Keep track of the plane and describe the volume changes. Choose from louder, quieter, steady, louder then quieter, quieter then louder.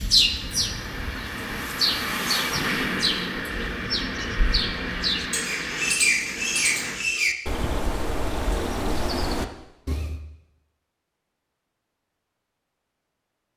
louder then quieter.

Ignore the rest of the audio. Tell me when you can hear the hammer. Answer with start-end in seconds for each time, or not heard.
not heard.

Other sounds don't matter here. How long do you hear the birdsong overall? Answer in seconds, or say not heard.
10 s.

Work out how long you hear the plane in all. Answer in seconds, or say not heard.
7 s.